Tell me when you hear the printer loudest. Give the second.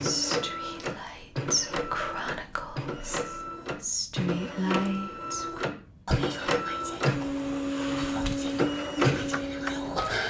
9 s.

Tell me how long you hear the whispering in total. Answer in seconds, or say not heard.
10 s.